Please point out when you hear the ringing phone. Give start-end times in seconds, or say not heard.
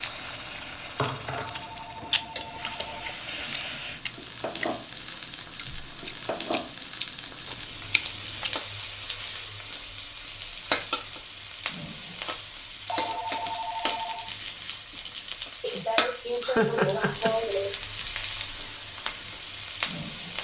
1.4-3.1, 12.8-14.3.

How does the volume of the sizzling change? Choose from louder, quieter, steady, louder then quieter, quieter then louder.
steady.